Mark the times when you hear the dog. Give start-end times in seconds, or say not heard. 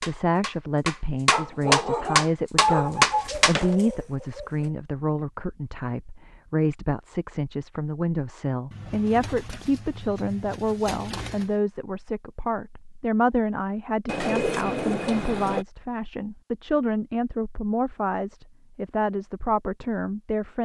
1.3-3.0.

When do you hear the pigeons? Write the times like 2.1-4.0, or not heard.
2.6-4.7, 8.7-11.5, 14.1-15.7.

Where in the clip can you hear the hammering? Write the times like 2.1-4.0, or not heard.
0.0-3.8.